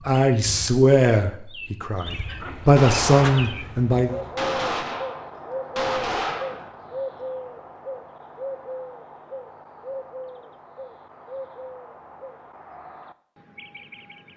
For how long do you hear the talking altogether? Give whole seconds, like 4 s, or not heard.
4 s.